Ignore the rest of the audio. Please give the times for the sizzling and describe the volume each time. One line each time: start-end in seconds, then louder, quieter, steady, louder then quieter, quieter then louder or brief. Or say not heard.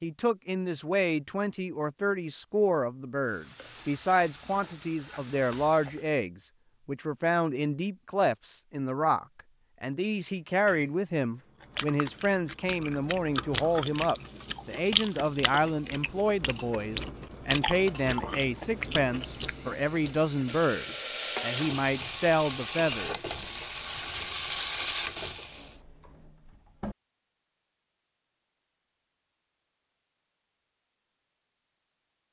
3.2-6.2 brief
13.4-25.8 louder.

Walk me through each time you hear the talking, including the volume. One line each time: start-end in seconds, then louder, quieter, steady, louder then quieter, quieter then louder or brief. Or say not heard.
0.0-23.1 steady.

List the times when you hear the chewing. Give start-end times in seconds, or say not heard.
11.6-21.1.